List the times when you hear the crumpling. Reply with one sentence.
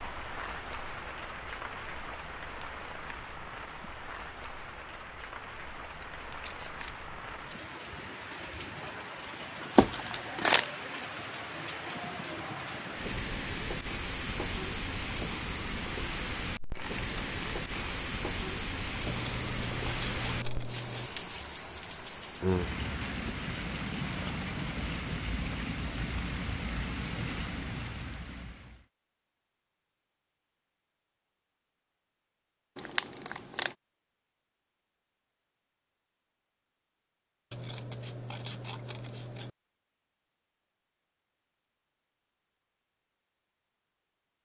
You can hear the crumpling from 9.8 to 10.7 s, from 16.7 to 18.1 s and from 32.8 to 33.8 s.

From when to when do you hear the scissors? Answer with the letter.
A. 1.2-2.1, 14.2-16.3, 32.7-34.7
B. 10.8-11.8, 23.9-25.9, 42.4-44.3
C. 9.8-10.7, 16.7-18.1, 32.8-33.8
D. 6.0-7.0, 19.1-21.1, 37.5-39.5
D.